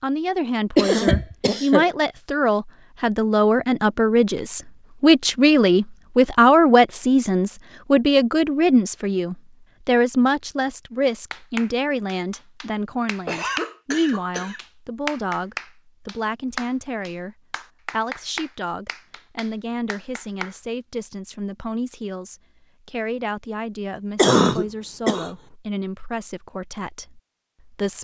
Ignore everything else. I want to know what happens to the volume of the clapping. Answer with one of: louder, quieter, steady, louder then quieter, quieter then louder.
louder then quieter.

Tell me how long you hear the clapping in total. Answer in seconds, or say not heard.
9 s.